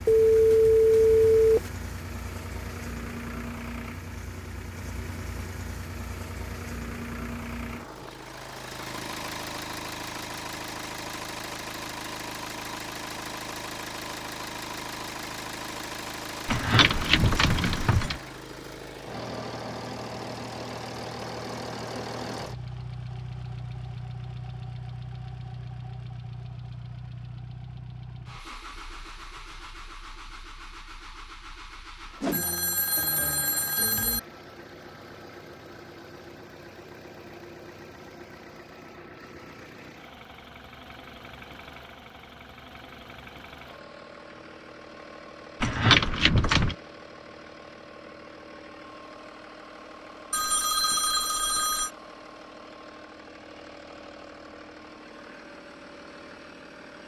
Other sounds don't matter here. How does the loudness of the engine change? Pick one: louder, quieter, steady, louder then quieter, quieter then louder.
quieter.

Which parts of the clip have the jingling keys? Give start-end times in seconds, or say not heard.
16.4-18.2, 45.6-46.8.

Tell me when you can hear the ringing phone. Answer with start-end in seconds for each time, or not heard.
0.1-1.7, 32.2-34.2, 50.3-51.9.